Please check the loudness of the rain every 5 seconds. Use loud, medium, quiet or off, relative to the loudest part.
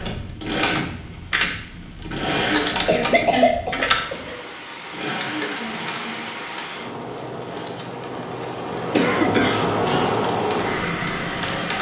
quiet, loud, loud.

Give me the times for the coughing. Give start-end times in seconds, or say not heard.
2.7-4.3, 8.9-10.2.